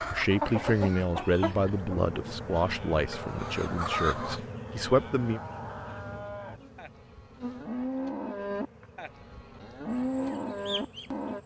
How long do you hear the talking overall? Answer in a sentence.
The talking can be heard for 5 seconds in total.